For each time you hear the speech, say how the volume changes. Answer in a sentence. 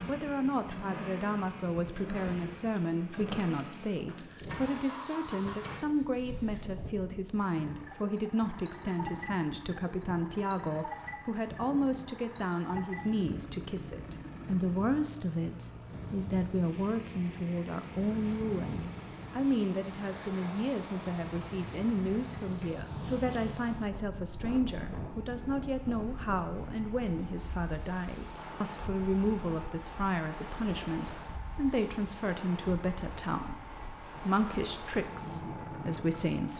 The speech can be heard from 0.1 to 36.5 s, at a steady volume.